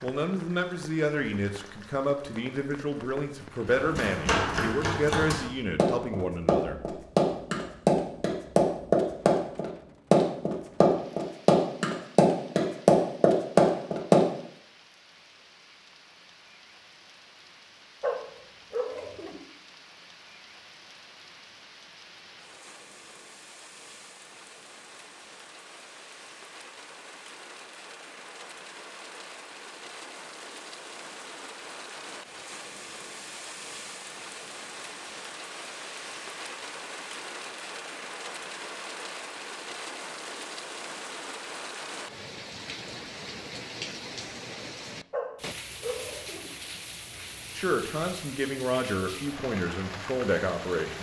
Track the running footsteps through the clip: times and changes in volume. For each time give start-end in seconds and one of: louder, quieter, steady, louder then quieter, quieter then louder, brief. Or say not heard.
3.6-14.2 louder.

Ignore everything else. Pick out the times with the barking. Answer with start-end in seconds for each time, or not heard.
18.0-19.4, 45.1-46.5.